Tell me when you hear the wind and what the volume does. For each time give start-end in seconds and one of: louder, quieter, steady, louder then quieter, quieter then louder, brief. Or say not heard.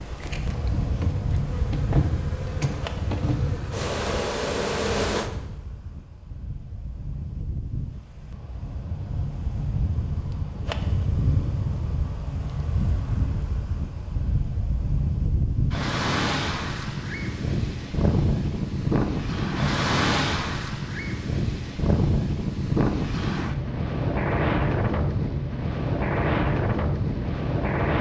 0.0-27.9 louder.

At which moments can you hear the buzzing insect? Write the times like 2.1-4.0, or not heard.
0.0-5.3.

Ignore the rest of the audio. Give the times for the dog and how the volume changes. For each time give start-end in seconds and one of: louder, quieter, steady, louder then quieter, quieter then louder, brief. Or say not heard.
not heard.